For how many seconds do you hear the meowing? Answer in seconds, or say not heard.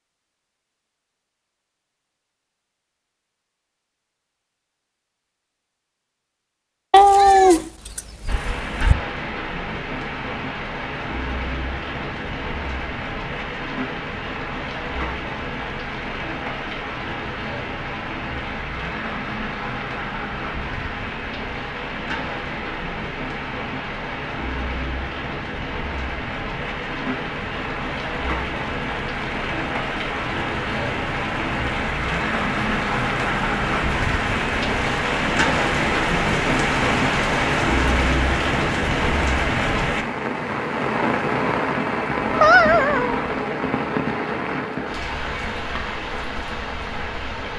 3 s.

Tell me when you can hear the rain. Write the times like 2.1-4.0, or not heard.
8.2-47.5.